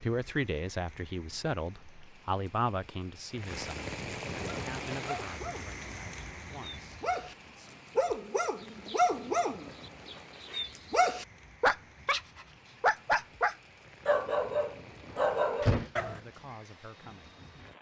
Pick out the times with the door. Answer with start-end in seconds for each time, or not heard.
15.1-15.9.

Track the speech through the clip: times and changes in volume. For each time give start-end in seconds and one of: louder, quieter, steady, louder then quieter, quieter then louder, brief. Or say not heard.
0.0-7.8 quieter
16.1-17.4 brief.